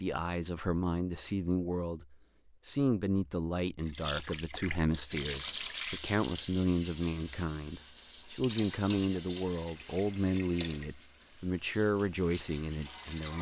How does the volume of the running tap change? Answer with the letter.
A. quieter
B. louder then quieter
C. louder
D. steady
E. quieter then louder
D.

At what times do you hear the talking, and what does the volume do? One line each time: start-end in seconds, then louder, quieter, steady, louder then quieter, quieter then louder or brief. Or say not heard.
0.0-13.3 steady.